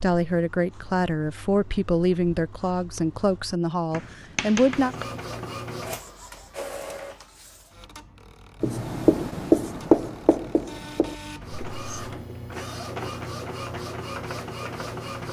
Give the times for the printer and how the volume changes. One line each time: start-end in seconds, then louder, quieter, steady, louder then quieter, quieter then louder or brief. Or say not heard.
4.5-15.2 quieter then louder.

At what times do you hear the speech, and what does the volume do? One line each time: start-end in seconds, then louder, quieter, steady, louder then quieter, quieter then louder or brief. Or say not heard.
0.0-5.0 steady.